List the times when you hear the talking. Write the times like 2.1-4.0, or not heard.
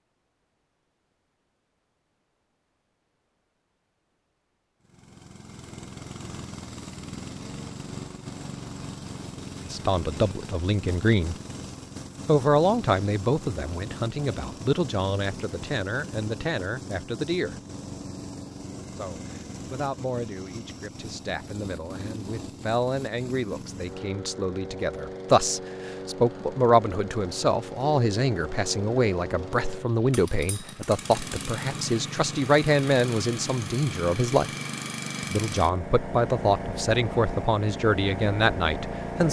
9.7-11.3, 12.2-17.6, 18.9-34.5, 35.2-39.2.